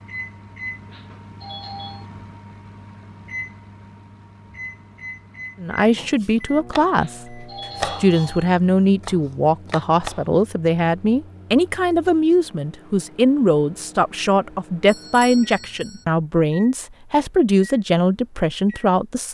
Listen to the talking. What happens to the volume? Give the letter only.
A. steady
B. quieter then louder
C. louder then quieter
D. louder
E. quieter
A.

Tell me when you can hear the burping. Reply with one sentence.
The burping can't be heard in this clip.